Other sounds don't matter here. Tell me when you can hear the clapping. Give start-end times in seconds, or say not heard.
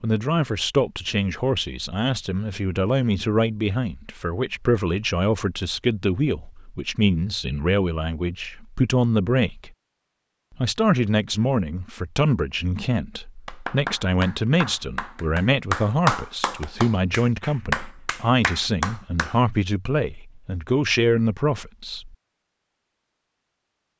13.4-19.4.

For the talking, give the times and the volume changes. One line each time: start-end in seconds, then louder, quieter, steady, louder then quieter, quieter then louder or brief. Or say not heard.
0.0-9.7 steady
10.6-22.1 steady.